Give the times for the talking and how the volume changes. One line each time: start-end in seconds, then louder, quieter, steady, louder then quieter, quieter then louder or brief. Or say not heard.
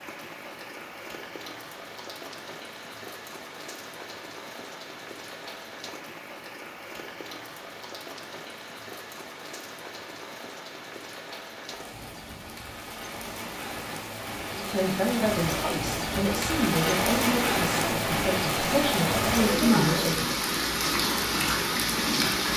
14.6-20.5 steady.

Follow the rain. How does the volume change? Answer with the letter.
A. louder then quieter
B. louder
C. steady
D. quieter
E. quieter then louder
B.